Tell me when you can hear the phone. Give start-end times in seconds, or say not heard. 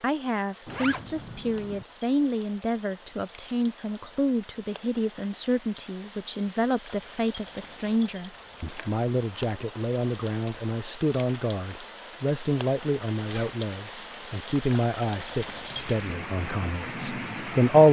not heard.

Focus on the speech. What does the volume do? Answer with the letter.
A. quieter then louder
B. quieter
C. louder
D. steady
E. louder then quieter
D.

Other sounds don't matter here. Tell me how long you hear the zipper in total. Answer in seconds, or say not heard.
2 s.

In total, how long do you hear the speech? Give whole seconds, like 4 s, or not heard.
18 s.